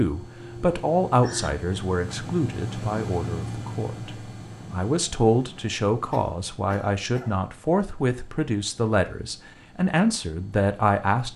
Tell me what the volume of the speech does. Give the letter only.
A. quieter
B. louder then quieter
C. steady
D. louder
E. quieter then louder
E.